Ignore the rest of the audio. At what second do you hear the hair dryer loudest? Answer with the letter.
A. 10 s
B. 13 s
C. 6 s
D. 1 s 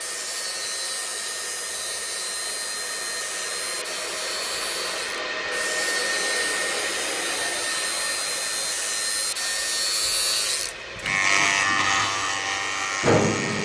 C.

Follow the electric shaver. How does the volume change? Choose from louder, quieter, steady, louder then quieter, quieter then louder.
louder.